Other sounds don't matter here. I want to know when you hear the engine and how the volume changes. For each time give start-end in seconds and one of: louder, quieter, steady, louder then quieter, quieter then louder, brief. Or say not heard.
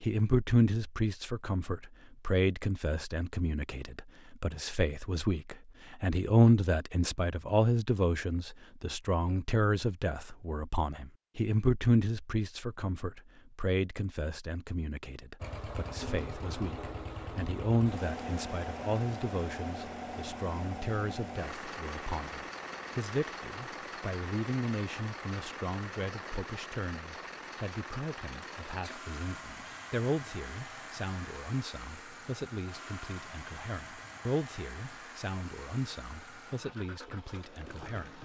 15.4-38.1 quieter.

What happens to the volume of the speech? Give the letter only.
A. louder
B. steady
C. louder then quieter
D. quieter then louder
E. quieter
E.